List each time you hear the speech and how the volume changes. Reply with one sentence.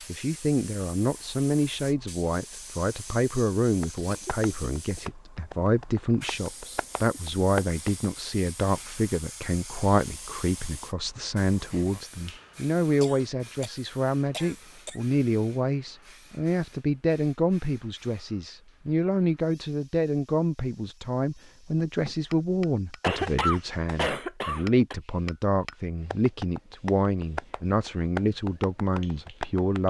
The speech can be heard from 0.1 to 29.8 s, at a steady volume.